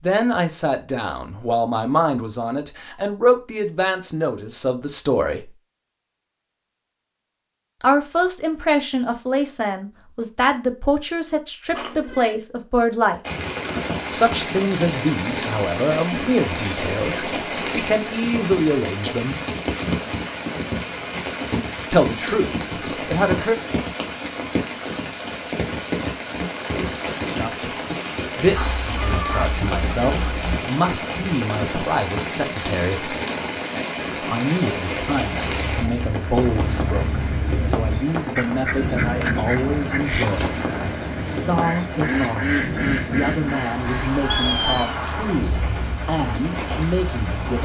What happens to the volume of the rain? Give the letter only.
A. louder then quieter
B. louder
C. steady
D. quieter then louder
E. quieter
C.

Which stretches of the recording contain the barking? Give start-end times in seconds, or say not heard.
28.5-30.6.